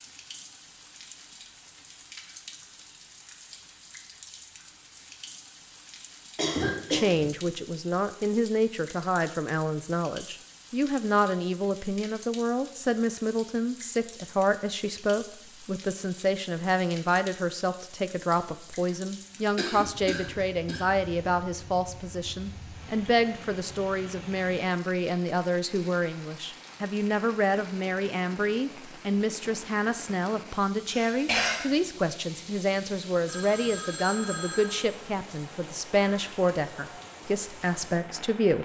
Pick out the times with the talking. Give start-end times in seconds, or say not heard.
6.9-38.6.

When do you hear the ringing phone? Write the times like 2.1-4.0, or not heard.
33.2-34.9.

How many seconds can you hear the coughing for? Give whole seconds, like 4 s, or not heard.
3 s.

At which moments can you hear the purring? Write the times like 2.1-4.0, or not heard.
not heard.